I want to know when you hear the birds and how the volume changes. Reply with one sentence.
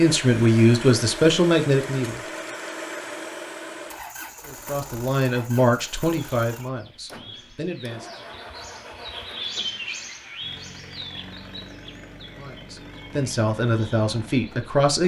The birds can be heard from 6.2 to 14.8 s, getting louder then quieter.